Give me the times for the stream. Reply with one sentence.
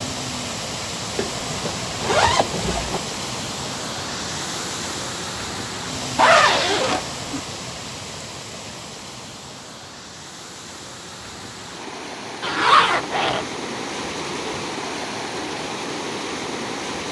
The stream can be heard from 0.0 to 17.0 s.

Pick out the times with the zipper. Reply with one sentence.
The zipper can be heard from 1.1 to 3.0 s, from 6.2 to 7.4 s and from 12.4 to 13.4 s.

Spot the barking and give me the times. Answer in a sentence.
The barking can't be heard in this clip.